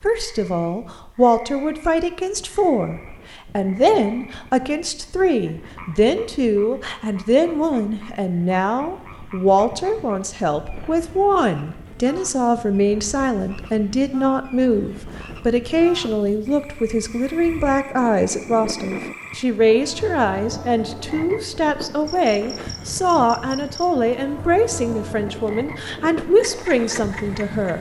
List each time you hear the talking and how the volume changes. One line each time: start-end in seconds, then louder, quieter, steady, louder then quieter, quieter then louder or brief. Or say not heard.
0.0-27.7 steady.